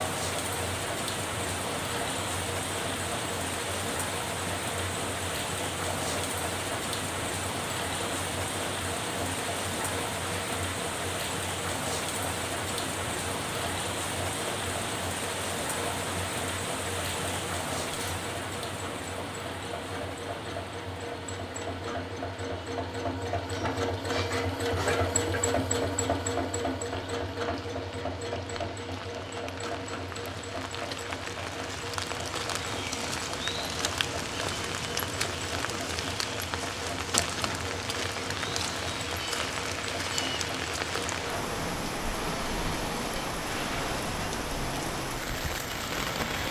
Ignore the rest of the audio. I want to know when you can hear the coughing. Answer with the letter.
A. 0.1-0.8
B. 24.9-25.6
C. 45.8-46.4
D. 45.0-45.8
B.